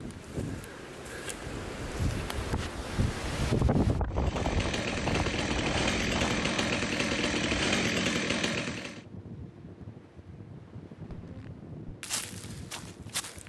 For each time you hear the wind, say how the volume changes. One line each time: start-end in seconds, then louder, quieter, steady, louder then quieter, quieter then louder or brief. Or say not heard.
0.0-13.4 louder then quieter.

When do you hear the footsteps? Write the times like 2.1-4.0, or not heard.
11.1-13.4.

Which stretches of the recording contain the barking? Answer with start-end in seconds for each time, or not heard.
not heard.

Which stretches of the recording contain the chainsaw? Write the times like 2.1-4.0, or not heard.
4.1-9.1.